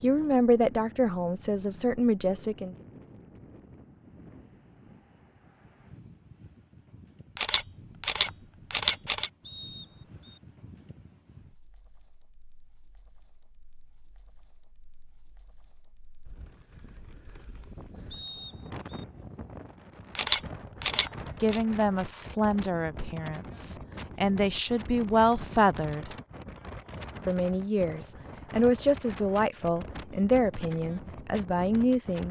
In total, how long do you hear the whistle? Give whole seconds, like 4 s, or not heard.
2 s.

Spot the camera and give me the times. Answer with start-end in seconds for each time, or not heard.
7.3-9.3, 20.1-21.6.